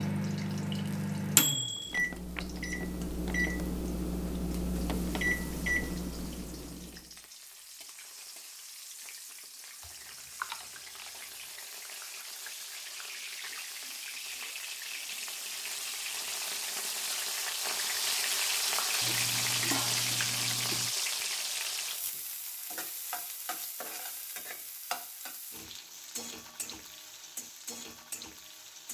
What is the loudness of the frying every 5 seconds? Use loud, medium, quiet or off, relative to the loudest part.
quiet, quiet, medium, loud, loud, quiet.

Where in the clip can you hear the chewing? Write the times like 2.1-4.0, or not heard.
9.8-11.1, 19.0-20.9.